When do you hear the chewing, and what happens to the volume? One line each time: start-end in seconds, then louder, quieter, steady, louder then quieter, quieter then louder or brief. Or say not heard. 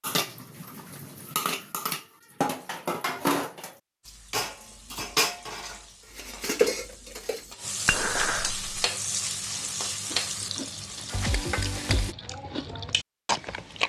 9.4-13.8 louder.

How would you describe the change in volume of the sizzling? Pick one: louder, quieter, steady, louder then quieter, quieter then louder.
louder.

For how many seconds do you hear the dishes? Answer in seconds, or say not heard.
9 s.